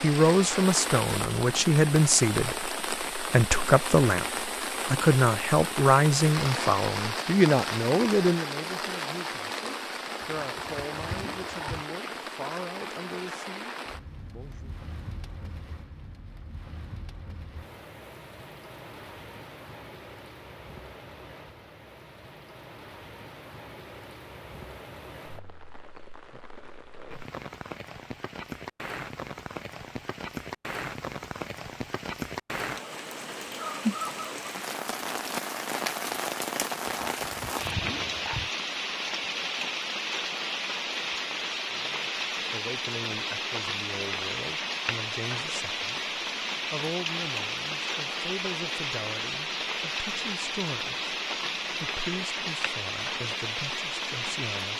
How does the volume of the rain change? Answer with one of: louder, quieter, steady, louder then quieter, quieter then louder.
quieter then louder.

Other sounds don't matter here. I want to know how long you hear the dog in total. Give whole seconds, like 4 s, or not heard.
3 s.